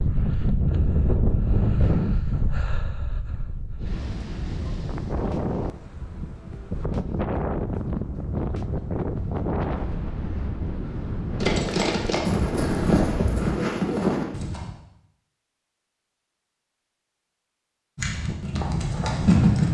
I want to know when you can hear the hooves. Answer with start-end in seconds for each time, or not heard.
11.4-14.7, 17.9-19.6.